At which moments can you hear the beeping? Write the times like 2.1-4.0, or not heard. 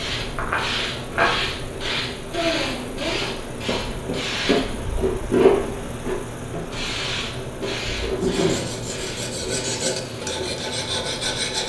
not heard.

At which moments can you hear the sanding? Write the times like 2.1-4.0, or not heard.
8.2-11.6.